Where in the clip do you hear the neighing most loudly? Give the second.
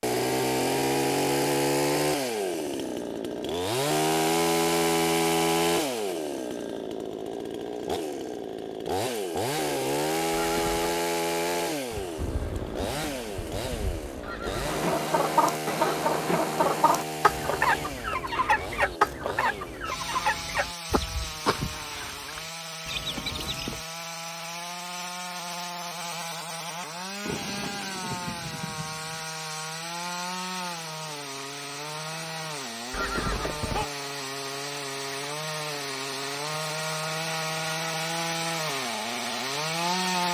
33 s.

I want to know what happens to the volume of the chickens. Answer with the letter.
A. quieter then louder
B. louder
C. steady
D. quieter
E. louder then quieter
D.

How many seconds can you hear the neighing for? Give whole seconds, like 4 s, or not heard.
2 s.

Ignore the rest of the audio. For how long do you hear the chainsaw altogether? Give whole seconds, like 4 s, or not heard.
40 s.